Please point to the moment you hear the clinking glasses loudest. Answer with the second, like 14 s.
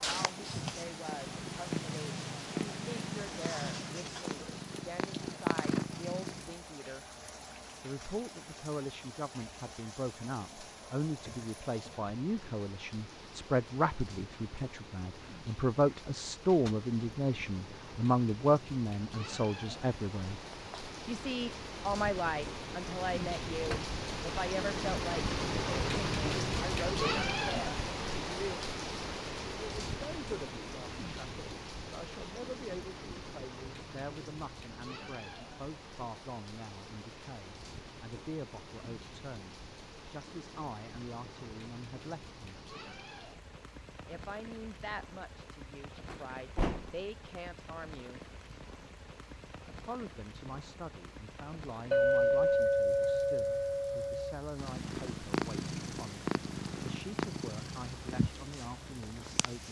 52 s.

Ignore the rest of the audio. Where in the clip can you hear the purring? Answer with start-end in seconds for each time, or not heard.
0.0-6.5, 54.5-59.6.